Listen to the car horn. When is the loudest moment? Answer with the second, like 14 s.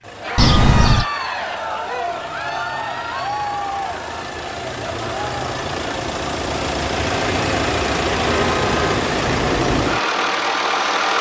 1 s.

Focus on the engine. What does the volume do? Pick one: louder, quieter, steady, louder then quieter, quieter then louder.
louder.